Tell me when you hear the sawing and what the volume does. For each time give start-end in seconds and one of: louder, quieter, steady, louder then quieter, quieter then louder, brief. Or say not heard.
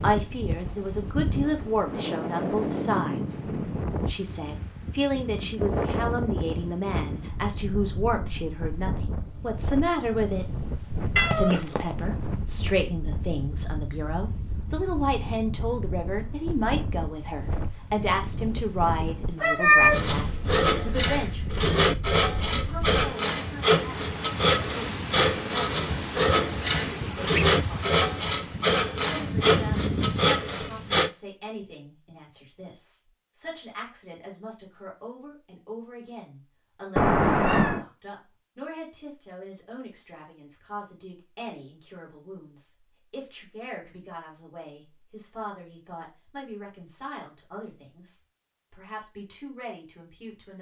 19.9-31.1 steady.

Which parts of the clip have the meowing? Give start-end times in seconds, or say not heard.
11.2-11.9, 19.4-20.0, 37.0-37.8.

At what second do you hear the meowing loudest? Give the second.
20 s.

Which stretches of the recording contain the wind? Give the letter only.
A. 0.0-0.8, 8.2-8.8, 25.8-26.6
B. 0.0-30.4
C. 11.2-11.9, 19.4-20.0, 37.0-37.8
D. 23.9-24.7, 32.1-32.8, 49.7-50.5
B.